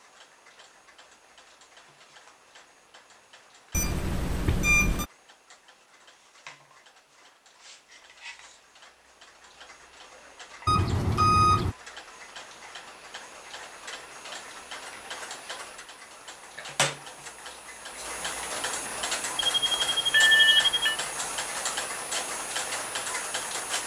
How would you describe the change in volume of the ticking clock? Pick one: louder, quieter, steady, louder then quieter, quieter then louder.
louder.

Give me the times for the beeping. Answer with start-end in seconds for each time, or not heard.
3.7-5.0, 10.7-11.8, 19.4-20.9.